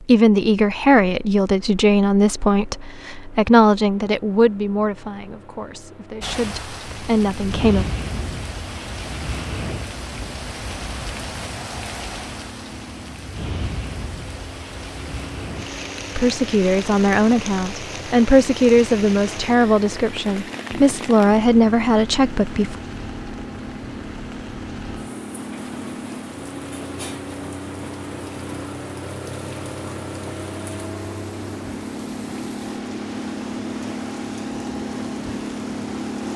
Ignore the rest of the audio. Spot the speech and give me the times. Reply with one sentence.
You can hear the speech from 0.1 to 7.8 s and from 16.1 to 22.8 s.